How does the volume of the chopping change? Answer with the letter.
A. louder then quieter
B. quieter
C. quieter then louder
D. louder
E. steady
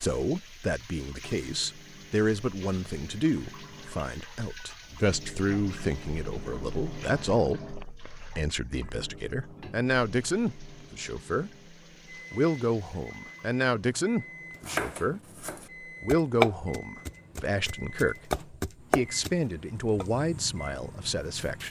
A.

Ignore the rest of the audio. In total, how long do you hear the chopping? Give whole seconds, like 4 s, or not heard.
7 s.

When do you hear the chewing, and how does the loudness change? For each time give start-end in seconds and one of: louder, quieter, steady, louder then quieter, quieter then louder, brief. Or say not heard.
not heard.